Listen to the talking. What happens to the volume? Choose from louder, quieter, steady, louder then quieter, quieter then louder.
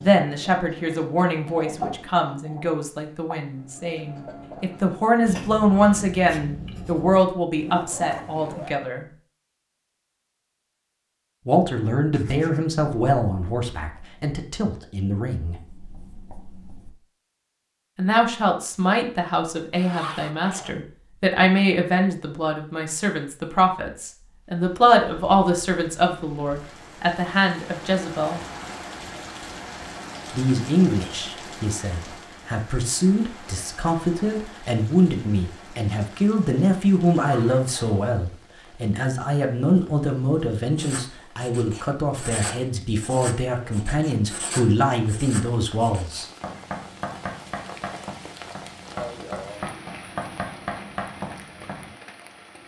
steady.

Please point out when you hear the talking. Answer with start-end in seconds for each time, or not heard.
0.0-9.1, 11.4-15.6, 17.9-28.4, 30.3-46.2.